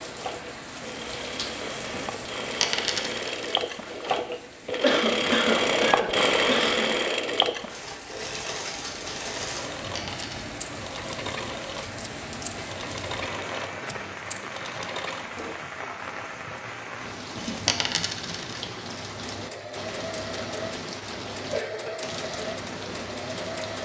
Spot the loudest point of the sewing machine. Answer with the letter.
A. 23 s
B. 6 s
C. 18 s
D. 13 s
B.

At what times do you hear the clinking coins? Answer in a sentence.
You can hear the clinking coins from 2.6 to 3.5 s, from 9.9 to 10.6 s and from 17.6 to 18.6 s.